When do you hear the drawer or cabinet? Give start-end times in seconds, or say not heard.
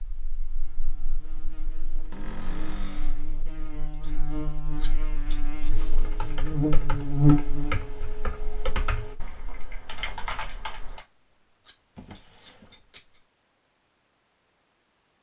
2.1-3.2, 11.9-13.1.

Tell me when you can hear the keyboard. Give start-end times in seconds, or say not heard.
5.7-11.1.